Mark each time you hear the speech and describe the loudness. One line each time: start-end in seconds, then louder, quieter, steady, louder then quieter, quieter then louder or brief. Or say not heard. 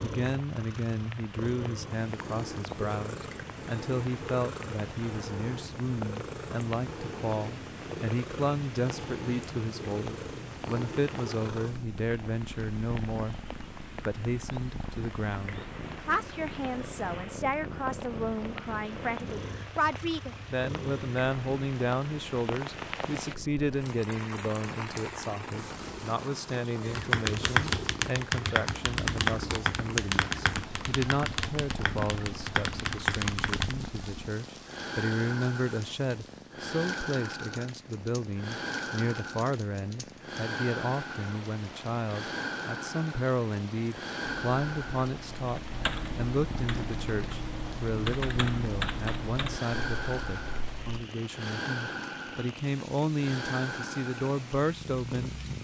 0.0-55.5 steady.